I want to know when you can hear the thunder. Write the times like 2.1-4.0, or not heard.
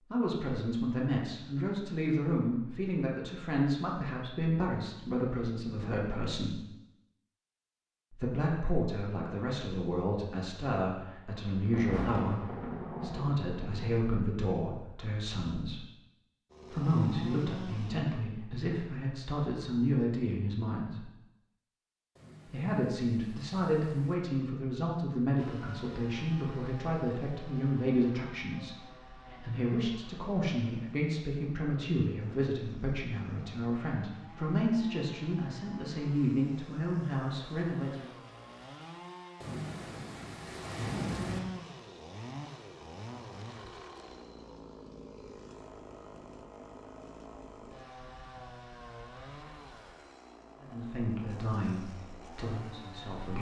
11.4-14.0, 22.1-24.1, 39.4-41.4.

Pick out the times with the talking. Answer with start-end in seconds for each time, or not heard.
0.1-6.6, 8.1-15.8, 16.7-21.1, 22.4-38.1, 50.6-53.3.